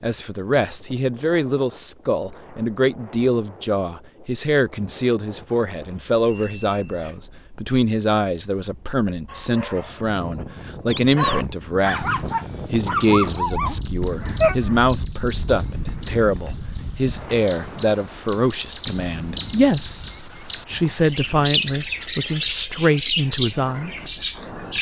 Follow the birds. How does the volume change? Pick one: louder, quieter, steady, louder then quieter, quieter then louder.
louder.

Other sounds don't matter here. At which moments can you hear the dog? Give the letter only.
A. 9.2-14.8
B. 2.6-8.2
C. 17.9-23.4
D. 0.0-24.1
A.